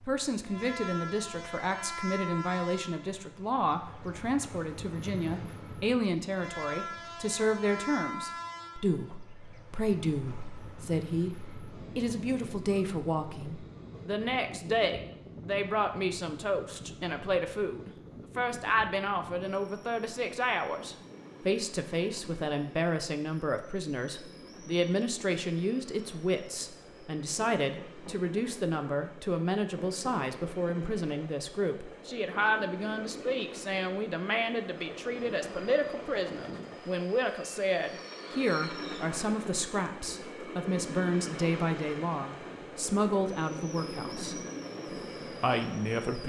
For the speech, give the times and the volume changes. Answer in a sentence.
You can hear the speech from 0.0 to 44.4 s, at a steady volume; and briefly from 45.3 to 46.2 s.